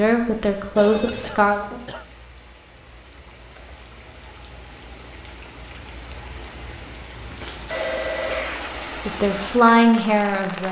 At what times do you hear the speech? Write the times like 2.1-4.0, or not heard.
0.0-1.6, 9.1-10.6.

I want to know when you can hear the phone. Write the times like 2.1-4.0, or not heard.
0.8-1.8, 7.2-8.6.